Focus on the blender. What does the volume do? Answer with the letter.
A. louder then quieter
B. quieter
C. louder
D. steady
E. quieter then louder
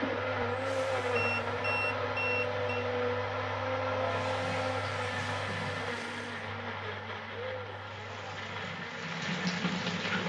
B.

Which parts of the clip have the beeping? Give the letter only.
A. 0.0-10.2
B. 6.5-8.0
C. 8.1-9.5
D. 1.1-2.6
D.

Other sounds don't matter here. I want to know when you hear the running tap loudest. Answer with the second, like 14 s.
10 s.